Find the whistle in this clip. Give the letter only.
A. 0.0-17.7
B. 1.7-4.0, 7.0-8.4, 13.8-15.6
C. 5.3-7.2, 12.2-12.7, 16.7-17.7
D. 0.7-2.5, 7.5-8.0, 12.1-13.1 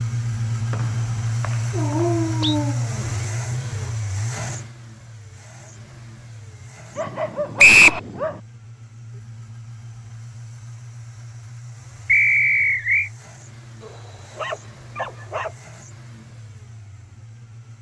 D.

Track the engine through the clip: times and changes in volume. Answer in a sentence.
You can hear the engine from 0.0 to 17.7 s, getting quieter.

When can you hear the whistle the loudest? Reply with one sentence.
The loudest moment of the whistle is at 8 seconds.